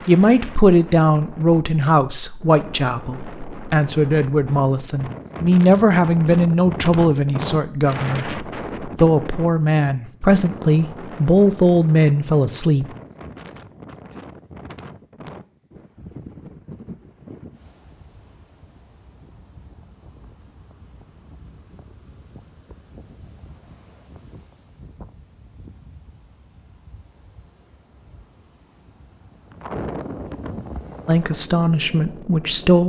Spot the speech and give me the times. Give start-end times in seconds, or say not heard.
0.1-12.8, 31.1-32.8.